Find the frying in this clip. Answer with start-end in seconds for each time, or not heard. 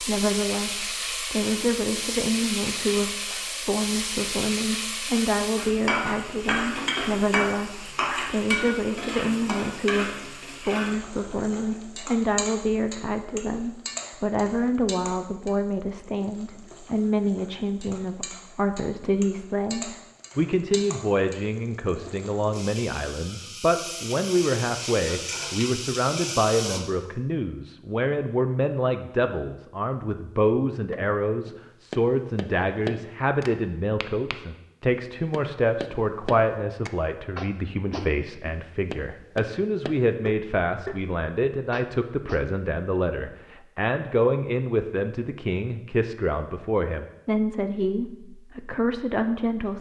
0.0-26.8.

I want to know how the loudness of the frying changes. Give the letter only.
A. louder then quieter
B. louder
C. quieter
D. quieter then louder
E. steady
D.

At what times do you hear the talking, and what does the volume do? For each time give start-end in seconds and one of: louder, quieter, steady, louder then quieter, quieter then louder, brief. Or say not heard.
0.0-49.7 steady.